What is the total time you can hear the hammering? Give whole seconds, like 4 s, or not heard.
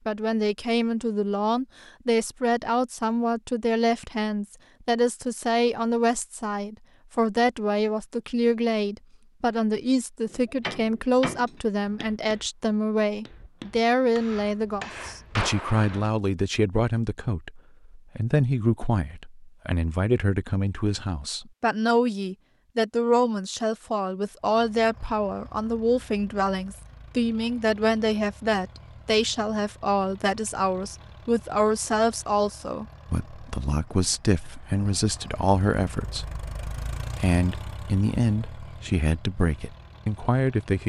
6 s.